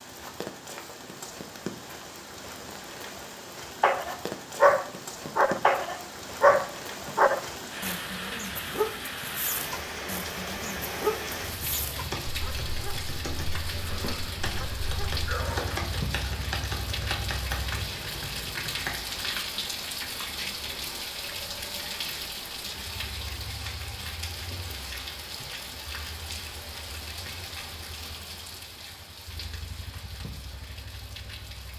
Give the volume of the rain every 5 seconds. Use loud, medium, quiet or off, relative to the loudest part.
medium, loud, loud, loud, loud, medium, medium.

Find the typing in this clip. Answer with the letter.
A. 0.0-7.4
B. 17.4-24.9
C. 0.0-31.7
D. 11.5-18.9
D.